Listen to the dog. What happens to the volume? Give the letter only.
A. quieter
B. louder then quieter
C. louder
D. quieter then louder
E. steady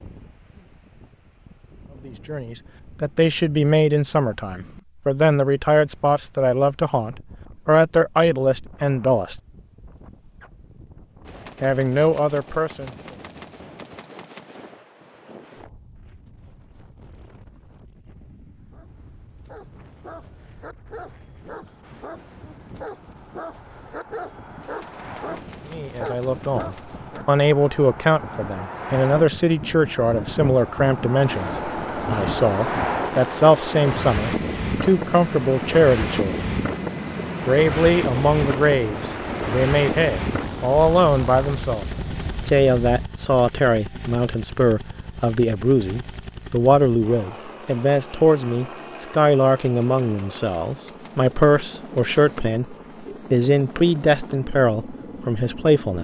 C.